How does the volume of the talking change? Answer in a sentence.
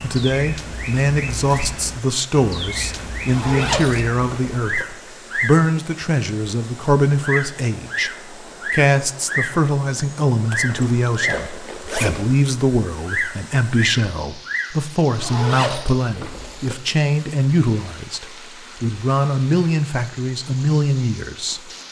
The volume of the talking stays about the same.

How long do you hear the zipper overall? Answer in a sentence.
You can hear the zipper for 5 seconds altogether.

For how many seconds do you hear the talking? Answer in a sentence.
You can hear the talking for 22 seconds altogether.